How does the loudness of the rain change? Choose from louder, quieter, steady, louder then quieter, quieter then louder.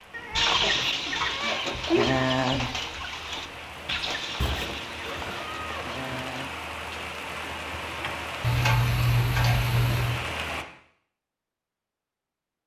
louder.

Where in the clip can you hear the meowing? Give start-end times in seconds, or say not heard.
0.1-2.2, 4.4-6.2, 8.4-10.2.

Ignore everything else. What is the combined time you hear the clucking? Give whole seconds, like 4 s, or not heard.
6 s.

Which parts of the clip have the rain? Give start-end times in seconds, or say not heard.
0.0-10.7.